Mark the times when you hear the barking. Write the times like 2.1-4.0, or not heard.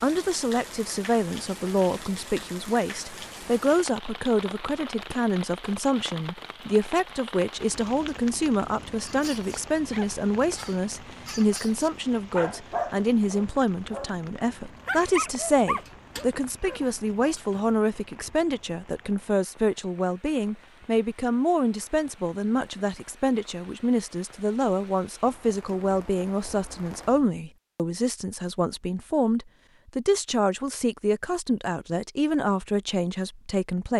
9.1-17.8.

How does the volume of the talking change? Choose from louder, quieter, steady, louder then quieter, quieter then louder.
steady.